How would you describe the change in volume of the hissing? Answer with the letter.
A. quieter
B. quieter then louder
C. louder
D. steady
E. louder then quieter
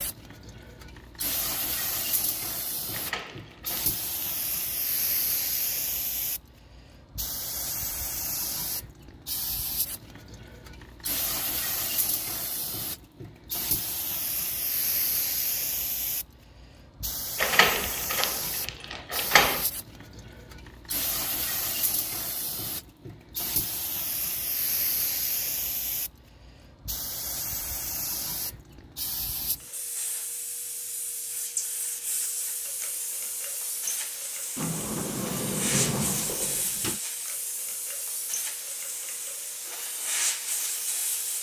D.